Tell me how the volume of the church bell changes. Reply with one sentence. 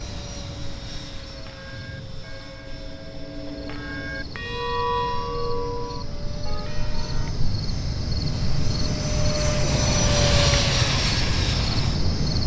The volume of the church bell goes up, then down.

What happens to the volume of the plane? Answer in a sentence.
The loudness of the plane goes up.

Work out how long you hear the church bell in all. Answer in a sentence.
You can hear the church bell for 6 seconds altogether.